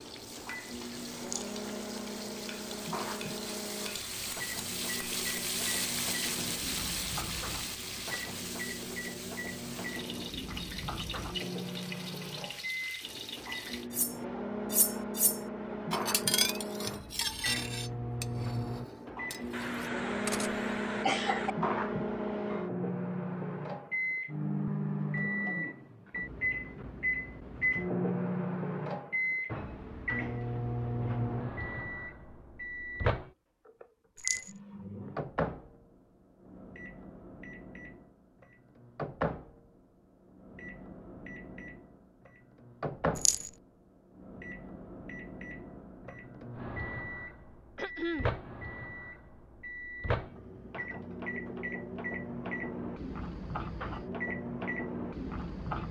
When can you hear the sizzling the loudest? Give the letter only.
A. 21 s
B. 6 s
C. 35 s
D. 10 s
B.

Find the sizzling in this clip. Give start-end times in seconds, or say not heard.
0.0-13.9.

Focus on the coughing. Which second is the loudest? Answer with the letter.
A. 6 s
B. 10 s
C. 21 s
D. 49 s
C.